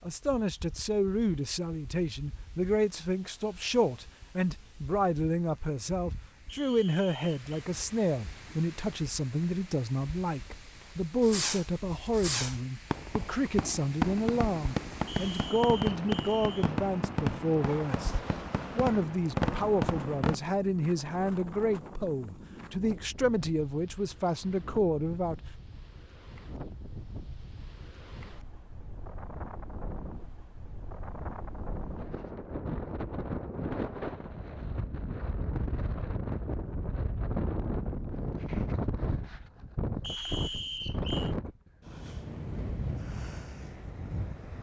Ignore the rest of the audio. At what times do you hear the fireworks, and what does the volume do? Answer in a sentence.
The fireworks can be heard from 11.2 to 20.4 s, at a steady volume.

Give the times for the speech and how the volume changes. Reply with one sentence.
You can hear the speech from 0.0 to 18.1 s, at a steady volume; and from 18.8 to 25.4 s, at a steady volume.